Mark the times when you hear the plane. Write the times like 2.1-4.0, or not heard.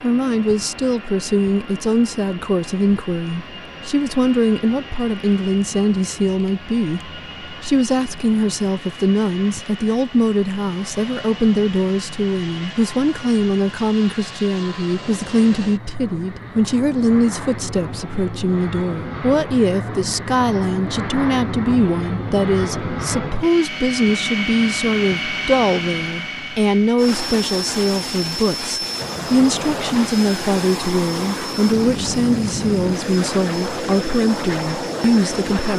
0.0-35.7.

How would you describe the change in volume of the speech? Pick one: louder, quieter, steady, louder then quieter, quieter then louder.
steady.